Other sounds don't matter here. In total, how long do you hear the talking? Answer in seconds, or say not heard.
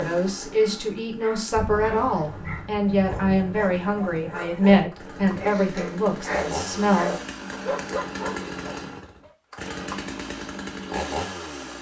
7 s.